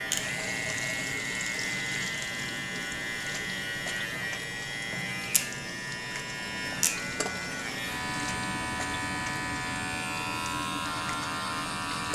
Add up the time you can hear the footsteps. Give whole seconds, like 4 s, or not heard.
not heard.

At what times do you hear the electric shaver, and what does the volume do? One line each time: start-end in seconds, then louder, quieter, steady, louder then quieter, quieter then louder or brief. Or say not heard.
0.0-12.0 steady.